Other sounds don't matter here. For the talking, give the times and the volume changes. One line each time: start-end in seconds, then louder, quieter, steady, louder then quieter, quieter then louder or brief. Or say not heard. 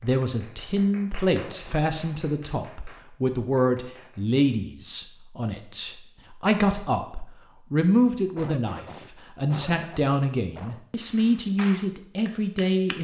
0.0-12.9 steady.